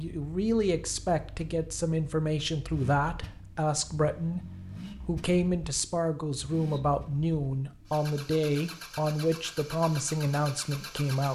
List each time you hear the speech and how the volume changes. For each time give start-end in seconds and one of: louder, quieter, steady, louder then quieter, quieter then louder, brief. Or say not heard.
0.0-11.3 steady.